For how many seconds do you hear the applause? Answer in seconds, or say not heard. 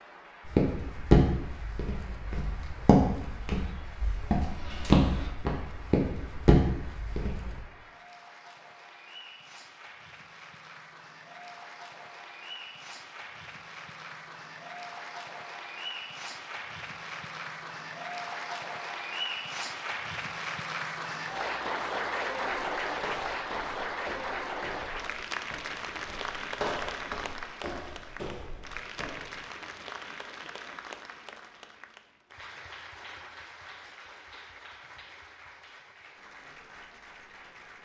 38 s.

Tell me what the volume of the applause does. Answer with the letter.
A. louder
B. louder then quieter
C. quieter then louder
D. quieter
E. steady
B.